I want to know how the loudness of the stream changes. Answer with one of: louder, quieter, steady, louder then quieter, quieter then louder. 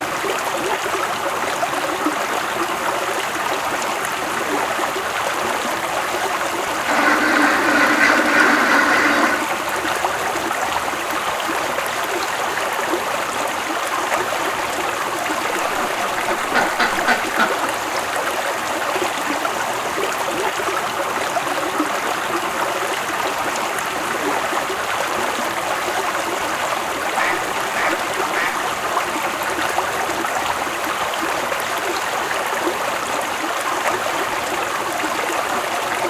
steady.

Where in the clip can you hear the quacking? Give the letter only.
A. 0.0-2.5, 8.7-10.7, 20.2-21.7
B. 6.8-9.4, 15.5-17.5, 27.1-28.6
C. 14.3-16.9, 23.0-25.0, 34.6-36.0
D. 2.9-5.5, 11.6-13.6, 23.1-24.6
B.